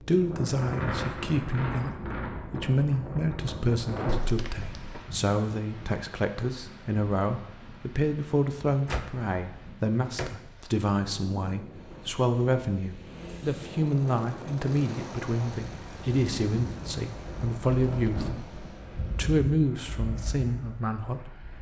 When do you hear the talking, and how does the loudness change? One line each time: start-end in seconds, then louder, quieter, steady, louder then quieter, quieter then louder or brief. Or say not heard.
0.0-21.5 steady.